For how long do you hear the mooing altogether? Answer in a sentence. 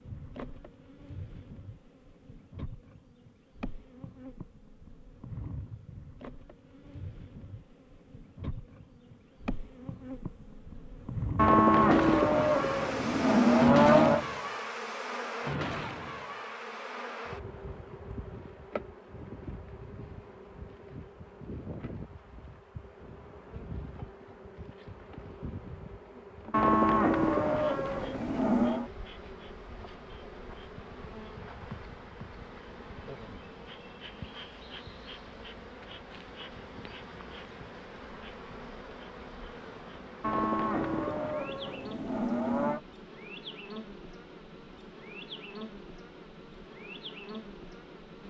The mooing can be heard for 8 seconds in total.